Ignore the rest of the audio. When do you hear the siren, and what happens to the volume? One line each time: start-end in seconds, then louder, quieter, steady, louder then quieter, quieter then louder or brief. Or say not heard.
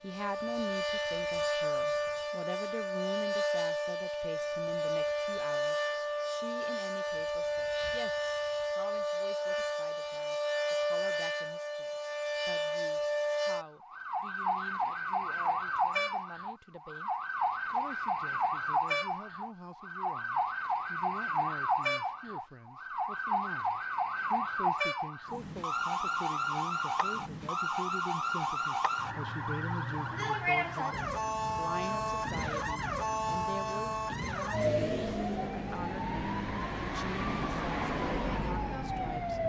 0.0-39.4 steady.